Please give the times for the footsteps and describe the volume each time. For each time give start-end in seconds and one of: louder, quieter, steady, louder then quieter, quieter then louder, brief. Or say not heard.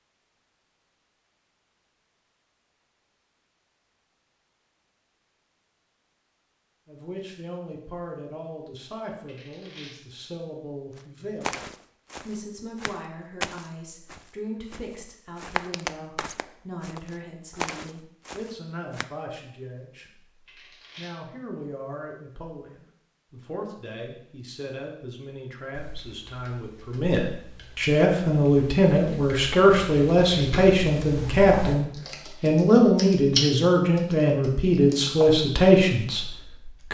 10.9-19.1 steady.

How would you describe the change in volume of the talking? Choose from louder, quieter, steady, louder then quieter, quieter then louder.
louder.